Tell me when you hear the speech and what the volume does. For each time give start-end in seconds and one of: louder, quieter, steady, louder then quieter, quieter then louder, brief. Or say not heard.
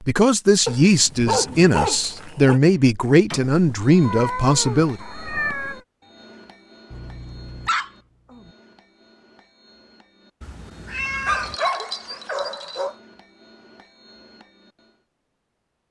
0.1-5.0 steady.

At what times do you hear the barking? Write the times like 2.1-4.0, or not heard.
0.7-2.6, 6.9-8.5, 11.2-12.9.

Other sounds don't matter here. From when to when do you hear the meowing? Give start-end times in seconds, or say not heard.
3.5-5.8, 10.4-11.6.